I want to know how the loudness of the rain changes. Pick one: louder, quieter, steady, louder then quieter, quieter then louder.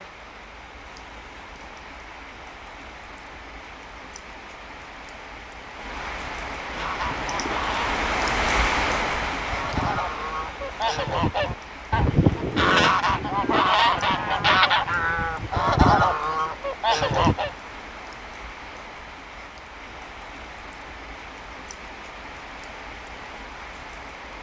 louder then quieter.